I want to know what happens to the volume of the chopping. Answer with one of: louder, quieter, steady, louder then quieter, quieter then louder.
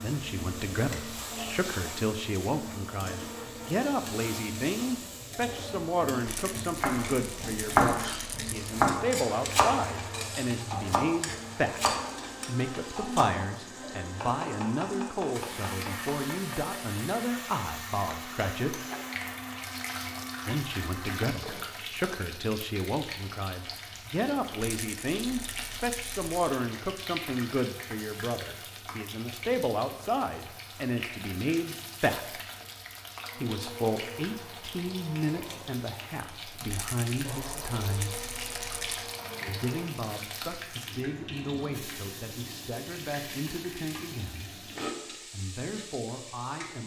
quieter.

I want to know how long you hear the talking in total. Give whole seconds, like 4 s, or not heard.
43 s.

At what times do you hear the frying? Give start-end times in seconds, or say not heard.
0.0-46.8.